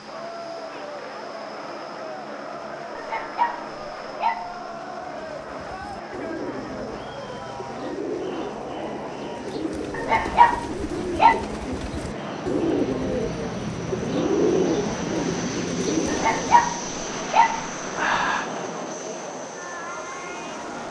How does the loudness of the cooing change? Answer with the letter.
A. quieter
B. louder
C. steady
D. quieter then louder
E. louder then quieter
B.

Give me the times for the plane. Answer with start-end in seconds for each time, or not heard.
0.0-20.8.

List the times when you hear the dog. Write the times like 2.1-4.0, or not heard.
3.0-4.5, 9.9-11.4, 16.1-18.5.